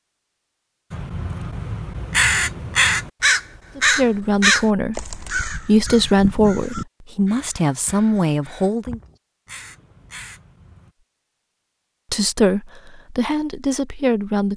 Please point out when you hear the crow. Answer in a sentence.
You can hear the crow from 0.9 to 10.9 s.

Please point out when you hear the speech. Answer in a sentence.
You can hear the speech from 3.8 to 9.0 s and from 12.1 to 14.5 s.